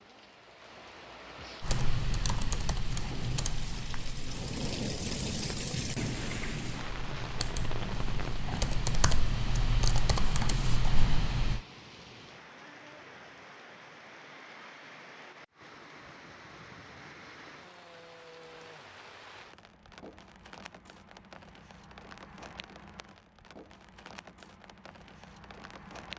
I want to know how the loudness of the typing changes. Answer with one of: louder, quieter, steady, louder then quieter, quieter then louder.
quieter then louder.